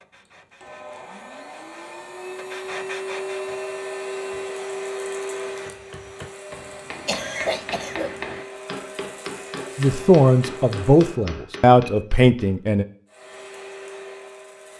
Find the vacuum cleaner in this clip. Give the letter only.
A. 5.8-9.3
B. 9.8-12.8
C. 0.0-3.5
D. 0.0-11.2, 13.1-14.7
D.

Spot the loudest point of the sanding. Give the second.
3 s.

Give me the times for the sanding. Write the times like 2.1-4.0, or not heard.
0.0-3.5.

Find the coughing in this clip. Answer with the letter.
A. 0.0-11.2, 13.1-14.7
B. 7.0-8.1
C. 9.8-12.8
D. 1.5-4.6
B.